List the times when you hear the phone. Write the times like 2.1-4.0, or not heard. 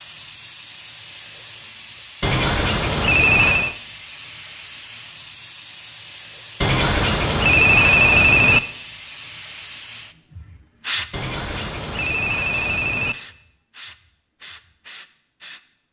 2.2-3.8, 6.6-8.6, 11.1-13.2.